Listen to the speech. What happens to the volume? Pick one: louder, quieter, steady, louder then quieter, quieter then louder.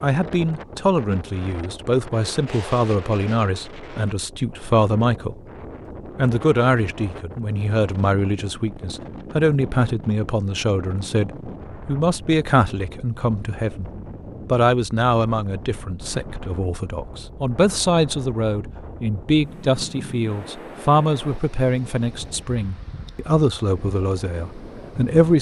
steady.